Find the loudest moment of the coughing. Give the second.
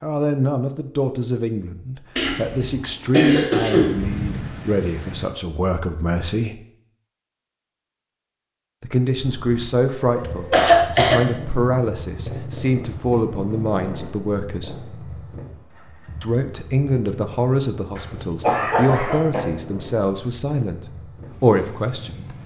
11 s.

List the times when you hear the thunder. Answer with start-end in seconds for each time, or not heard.
3.7-5.2.